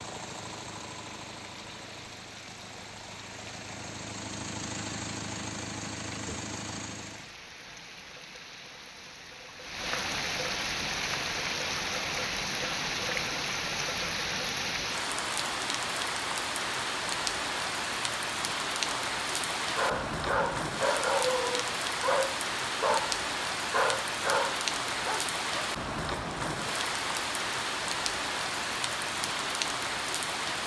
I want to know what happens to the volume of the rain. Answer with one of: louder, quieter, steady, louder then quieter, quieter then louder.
louder.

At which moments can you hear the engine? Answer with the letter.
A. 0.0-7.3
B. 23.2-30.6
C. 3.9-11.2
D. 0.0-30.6
A.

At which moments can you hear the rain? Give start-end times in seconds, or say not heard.
0.0-30.6.